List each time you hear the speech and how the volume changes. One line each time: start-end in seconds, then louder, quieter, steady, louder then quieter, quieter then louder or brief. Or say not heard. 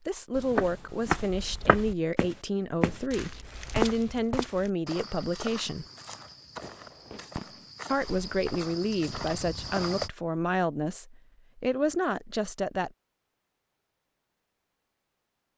0.1-5.8 steady
7.8-12.9 quieter then louder.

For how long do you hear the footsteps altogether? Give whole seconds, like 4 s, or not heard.
10 s.